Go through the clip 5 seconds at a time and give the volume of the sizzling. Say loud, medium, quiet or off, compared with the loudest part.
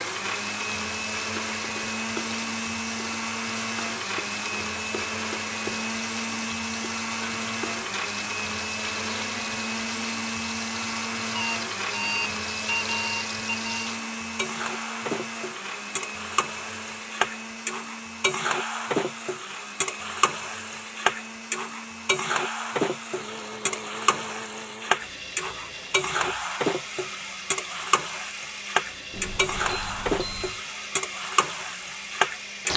medium, medium, medium, loud, loud, loud, loud.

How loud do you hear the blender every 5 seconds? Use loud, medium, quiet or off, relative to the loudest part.
loud, loud, loud, medium, medium, medium, medium.